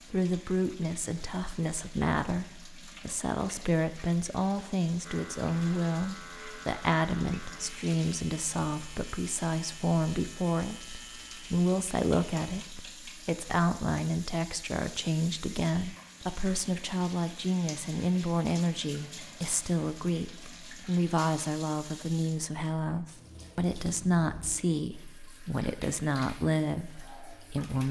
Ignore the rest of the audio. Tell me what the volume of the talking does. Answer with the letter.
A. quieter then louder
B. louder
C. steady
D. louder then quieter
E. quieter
C.